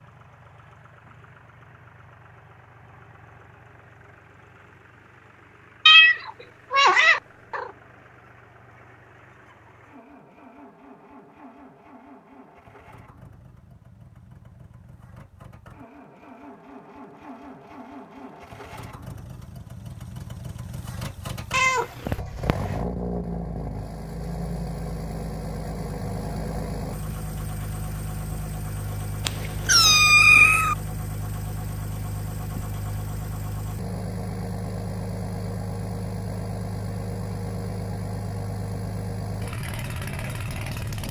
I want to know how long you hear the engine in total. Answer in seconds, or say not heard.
41 s.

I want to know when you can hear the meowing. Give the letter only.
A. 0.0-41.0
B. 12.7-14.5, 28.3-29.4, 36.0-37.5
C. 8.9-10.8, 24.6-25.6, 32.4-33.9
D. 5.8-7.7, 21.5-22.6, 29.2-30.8
D.